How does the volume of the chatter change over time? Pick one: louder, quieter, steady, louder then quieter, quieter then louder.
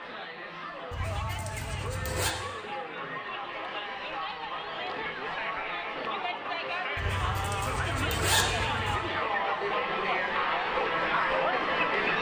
louder.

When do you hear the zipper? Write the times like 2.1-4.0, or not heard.
0.9-2.4, 7.0-9.0.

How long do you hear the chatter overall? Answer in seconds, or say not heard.
12 s.